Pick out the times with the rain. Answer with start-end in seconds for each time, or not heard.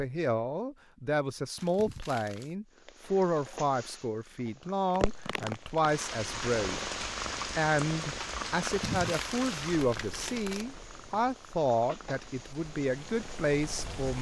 4.8-14.1.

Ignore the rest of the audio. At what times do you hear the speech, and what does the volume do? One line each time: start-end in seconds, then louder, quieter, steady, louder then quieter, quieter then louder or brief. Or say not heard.
0.0-14.1 steady.